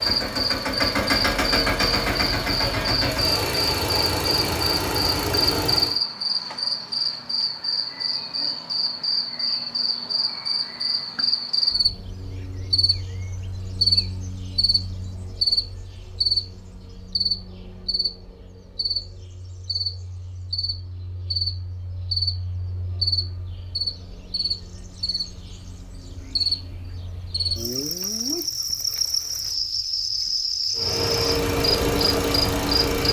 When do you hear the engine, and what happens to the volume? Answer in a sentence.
You can hear the engine from 0.0 to 6.0 s, at a steady volume; and briefly from 30.8 to 33.0 s.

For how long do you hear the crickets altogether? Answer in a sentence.
You can hear the crickets for 33 seconds altogether.